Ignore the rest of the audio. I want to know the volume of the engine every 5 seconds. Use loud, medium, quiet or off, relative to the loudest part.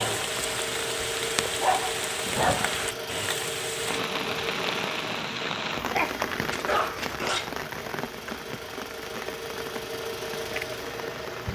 loud, medium, loud.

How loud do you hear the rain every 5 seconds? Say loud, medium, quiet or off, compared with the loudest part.
loud, loud, medium.